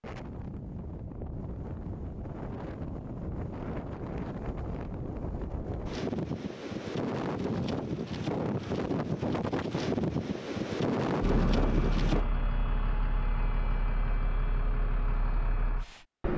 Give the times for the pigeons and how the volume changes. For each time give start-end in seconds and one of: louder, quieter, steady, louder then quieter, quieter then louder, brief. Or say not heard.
not heard.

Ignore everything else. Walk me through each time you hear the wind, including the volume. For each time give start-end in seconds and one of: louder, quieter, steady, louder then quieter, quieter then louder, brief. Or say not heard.
0.0-12.2 louder.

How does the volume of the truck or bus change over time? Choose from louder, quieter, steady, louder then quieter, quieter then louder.
steady.